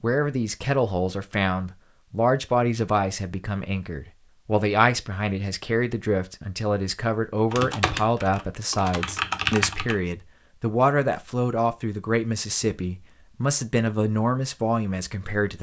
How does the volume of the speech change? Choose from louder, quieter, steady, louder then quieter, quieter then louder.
steady.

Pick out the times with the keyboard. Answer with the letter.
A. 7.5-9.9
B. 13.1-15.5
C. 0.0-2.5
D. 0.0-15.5
A.